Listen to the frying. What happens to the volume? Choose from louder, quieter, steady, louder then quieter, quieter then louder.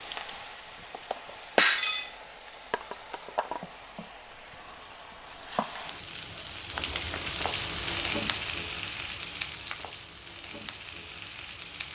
louder then quieter.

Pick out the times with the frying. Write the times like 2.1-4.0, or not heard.
0.0-11.8.